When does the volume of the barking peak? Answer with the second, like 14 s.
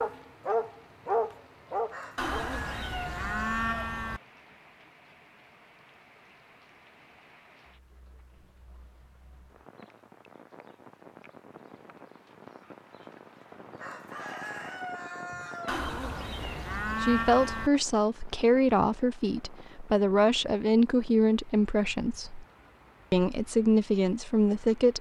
1 s.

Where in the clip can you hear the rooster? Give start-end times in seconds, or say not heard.
1.9-3.8, 13.8-15.8.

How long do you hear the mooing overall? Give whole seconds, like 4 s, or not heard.
4 s.